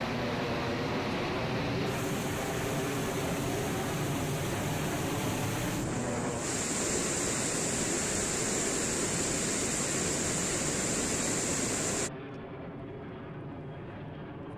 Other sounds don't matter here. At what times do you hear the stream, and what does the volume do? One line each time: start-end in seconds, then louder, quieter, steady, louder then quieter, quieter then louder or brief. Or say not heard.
0.0-12.1 louder.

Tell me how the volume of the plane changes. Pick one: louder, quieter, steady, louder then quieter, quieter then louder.
quieter.